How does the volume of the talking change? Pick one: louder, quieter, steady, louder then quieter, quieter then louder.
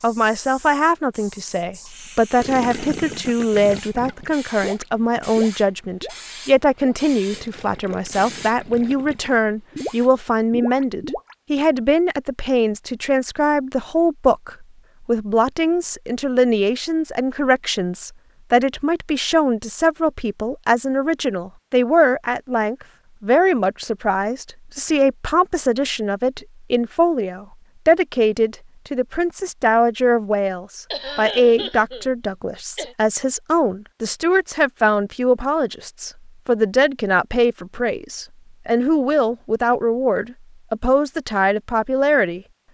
steady.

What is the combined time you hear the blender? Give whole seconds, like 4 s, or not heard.
not heard.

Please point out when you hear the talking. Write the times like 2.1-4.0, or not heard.
0.0-42.4.